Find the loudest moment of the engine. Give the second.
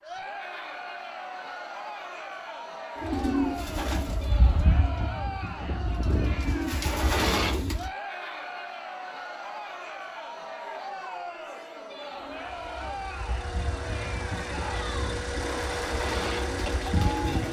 16 s.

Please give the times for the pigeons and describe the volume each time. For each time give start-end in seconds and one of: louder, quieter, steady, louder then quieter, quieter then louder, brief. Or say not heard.
3.0-7.9 quieter then louder
12.2-17.4 louder.